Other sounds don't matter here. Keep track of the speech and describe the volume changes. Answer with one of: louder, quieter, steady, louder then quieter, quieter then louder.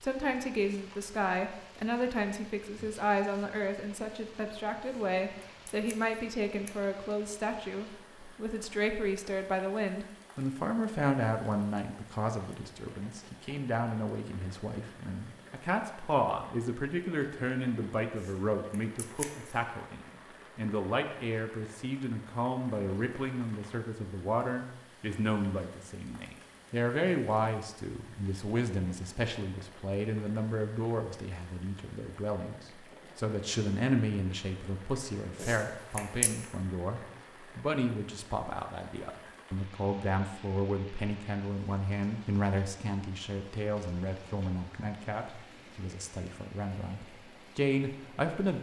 steady.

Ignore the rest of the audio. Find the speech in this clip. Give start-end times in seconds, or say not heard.
0.0-48.5.